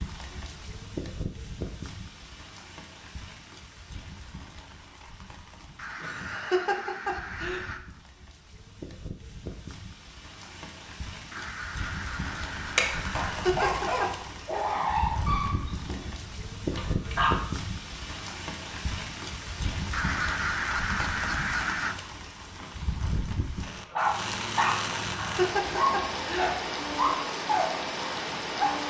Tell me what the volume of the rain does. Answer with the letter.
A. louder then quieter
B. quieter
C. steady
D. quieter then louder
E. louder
E.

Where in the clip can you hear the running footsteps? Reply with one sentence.
The running footsteps can't be heard in this clip.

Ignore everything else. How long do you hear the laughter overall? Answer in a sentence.
The laughter can be heard for 4 seconds in total.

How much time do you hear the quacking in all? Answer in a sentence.
The quacking can be heard for 6 seconds in total.